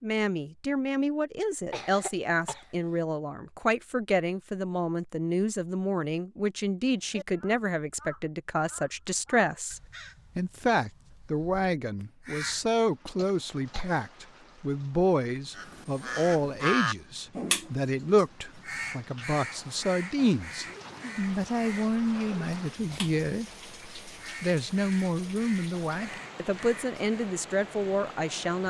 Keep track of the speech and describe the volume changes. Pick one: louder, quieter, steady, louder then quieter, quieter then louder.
steady.